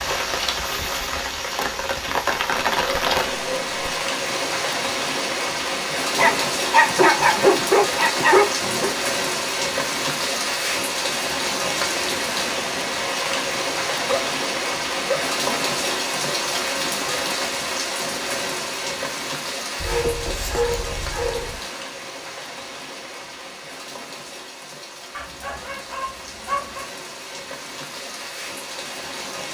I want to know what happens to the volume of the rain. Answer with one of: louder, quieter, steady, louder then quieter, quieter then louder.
quieter.